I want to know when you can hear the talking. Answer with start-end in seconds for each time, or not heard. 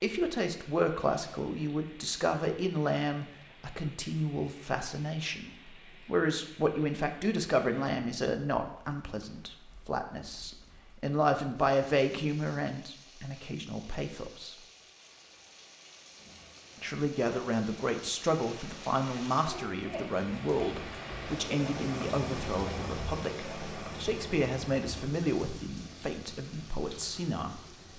0.0-14.6, 16.8-27.6.